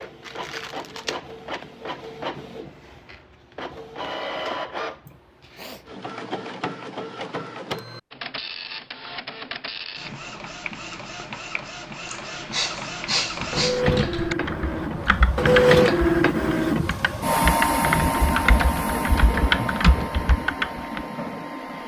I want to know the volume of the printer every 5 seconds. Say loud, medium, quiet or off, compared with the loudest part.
quiet, quiet, medium, loud, medium.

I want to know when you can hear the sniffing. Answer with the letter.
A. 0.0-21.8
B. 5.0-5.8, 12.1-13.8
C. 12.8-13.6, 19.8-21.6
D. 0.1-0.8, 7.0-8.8
B.